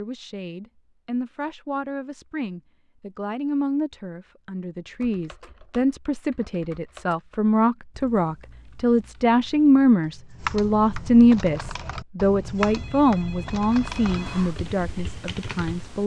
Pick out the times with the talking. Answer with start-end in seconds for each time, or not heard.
0.0-16.0.